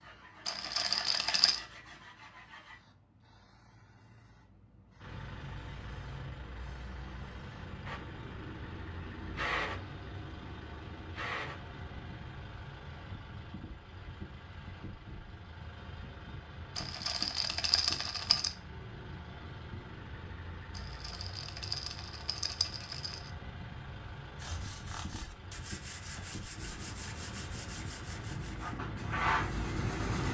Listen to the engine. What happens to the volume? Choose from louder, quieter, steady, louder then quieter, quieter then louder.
steady.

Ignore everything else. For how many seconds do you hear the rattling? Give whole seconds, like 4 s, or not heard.
5 s.